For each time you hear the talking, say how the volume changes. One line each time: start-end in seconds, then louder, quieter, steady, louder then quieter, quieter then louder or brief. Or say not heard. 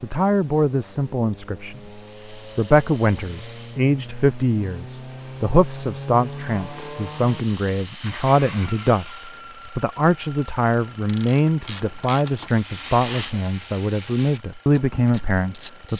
0.0-15.9 steady.